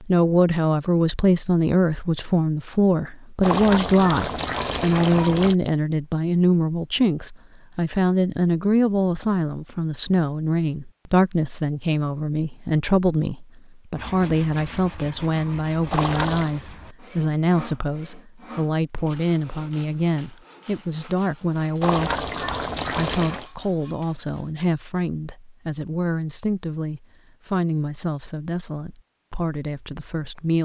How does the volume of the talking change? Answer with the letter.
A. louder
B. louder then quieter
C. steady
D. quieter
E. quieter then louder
D.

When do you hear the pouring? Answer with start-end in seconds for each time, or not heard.
3.4-5.5, 15.9-16.5, 21.8-23.5.